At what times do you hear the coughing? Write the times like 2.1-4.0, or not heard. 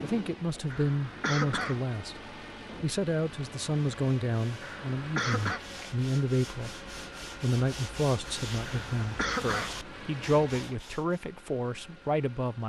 0.7-1.9, 4.6-5.6, 8.7-9.8.